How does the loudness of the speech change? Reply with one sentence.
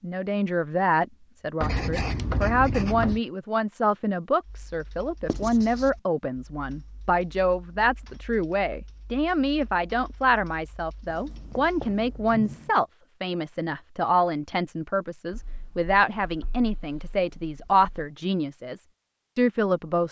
The loudness of the speech stays about the same.